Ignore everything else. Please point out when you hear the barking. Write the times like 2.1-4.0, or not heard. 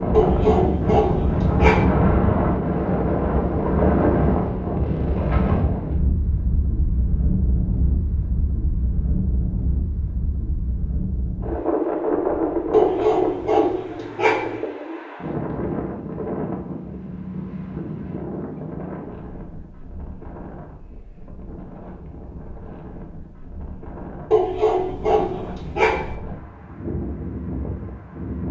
0.1-1.9, 12.7-14.6, 24.3-26.1.